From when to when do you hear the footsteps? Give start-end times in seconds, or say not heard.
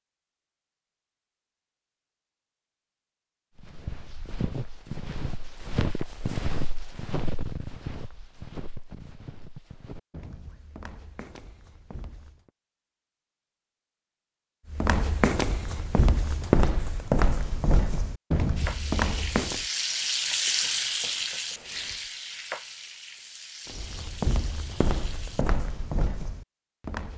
3.5-12.5, 14.7-19.6, 23.6-27.1.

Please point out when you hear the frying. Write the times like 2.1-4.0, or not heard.
18.6-25.6.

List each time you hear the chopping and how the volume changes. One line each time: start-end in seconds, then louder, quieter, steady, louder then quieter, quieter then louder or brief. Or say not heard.
not heard.